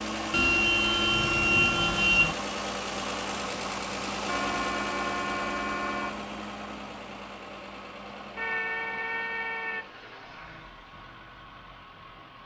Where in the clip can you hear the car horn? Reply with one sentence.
The car horn can be heard from 0.3 to 2.4 s, from 4.2 to 6.2 s and from 8.3 to 9.8 s.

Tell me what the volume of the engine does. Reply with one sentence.
The loudness of the engine goes down.